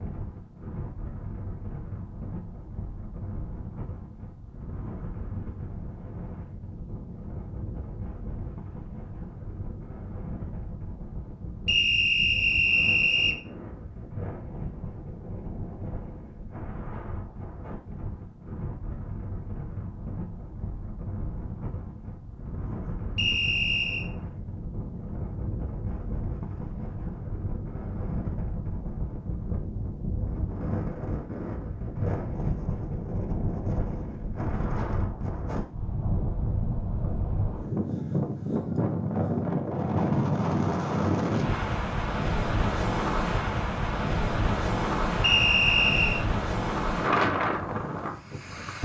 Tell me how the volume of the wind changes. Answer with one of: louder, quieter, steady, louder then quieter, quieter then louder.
louder.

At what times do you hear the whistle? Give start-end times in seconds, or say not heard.
11.7-13.3, 23.1-24.1, 45.2-46.2.